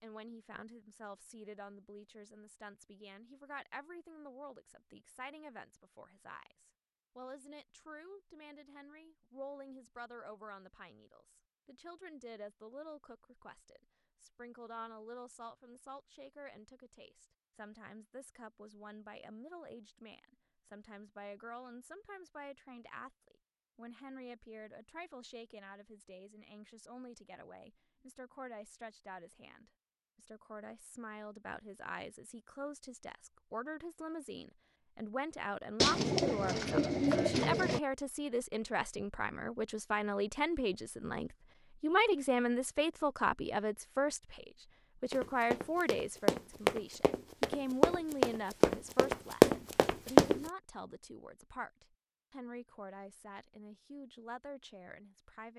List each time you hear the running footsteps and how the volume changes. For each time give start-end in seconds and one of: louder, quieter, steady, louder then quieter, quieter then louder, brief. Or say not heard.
45.1-50.4 louder.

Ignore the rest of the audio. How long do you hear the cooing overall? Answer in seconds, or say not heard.
2 s.